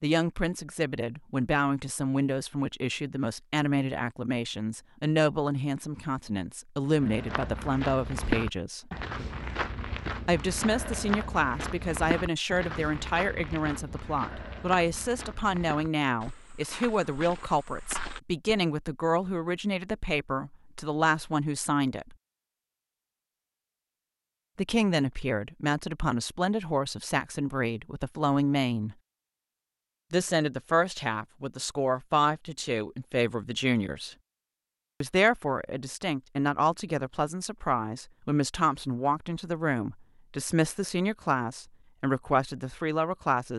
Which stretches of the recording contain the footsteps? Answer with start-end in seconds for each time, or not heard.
6.9-18.6.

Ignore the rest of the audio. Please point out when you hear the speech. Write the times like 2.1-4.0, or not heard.
0.0-8.9, 10.2-22.1, 24.6-28.9, 30.1-34.1, 35.0-43.5.